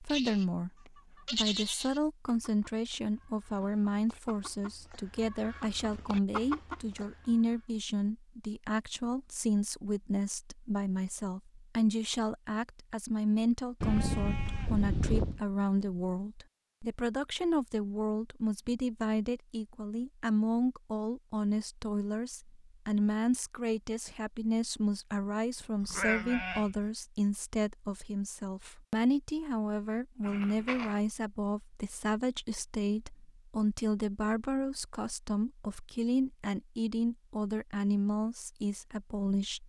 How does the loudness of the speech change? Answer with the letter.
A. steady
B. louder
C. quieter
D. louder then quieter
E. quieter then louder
A.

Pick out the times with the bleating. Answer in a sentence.
You can hear the bleating from 0.1 to 0.5 s, from 1.2 to 2.0 s, from 13.8 to 15.4 s, from 25.8 to 26.9 s and from 30.2 to 31.0 s.